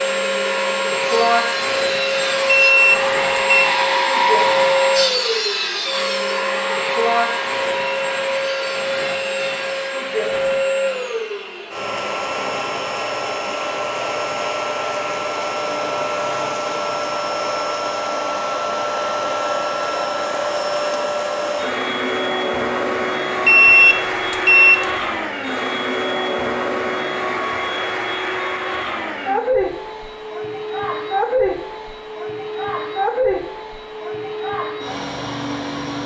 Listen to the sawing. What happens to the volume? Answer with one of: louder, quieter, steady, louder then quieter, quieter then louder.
louder then quieter.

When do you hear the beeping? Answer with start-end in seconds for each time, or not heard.
2.5-3.7, 23.4-24.9.